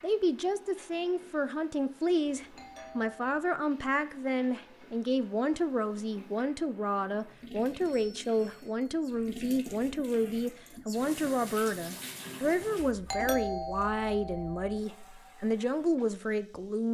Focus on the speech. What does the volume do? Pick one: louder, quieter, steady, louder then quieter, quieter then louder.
steady.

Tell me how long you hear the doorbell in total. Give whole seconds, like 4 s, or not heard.
4 s.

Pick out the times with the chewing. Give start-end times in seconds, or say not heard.
not heard.